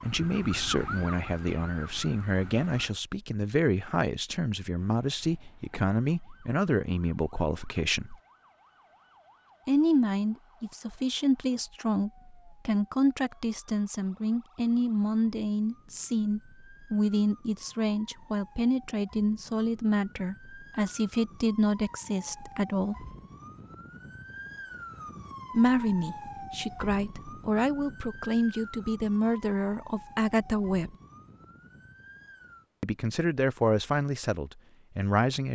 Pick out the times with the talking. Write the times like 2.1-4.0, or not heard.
0.0-8.2, 9.7-22.9, 25.5-30.9, 32.8-35.5.